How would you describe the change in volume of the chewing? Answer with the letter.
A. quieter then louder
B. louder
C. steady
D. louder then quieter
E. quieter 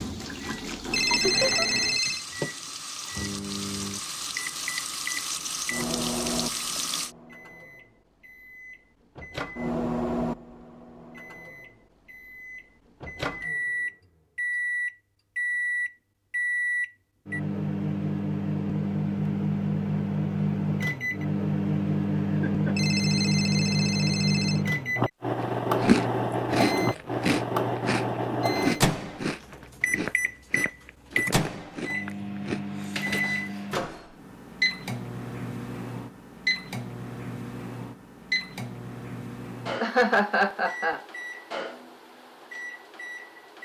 E.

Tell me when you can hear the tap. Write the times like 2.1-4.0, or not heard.
0.0-7.2.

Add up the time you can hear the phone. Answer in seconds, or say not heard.
3 s.